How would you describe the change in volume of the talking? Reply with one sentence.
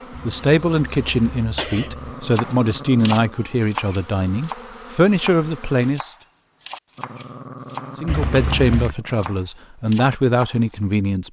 The volume of the talking stays about the same.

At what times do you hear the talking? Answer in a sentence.
You can hear the talking from 0.2 to 6.1 s and from 8.0 to 11.2 s.